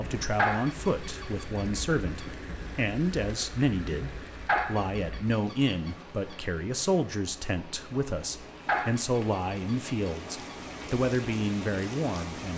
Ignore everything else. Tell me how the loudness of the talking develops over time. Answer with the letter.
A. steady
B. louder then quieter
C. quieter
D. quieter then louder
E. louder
A.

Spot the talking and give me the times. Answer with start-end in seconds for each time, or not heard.
0.0-12.5.